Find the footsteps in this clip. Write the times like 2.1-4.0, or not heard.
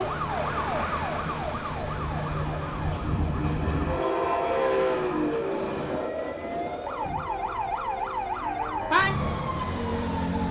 not heard.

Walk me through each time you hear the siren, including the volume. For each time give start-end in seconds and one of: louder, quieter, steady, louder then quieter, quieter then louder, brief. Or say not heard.
0.0-10.4 quieter then louder.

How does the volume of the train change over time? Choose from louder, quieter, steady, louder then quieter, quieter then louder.
louder then quieter.